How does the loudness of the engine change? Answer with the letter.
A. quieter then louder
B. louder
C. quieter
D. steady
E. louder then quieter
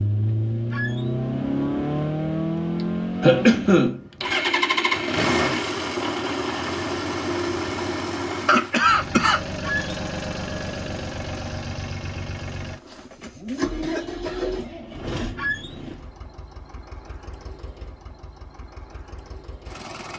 C.